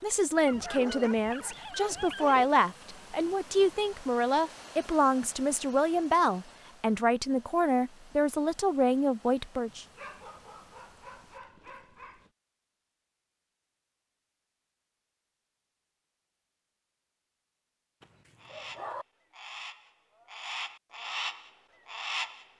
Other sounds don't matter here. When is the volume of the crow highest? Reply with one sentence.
The volume of the crow peaks at 22 seconds.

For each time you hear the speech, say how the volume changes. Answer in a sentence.
You can hear the speech from 0.0 to 9.8 s, at a steady volume.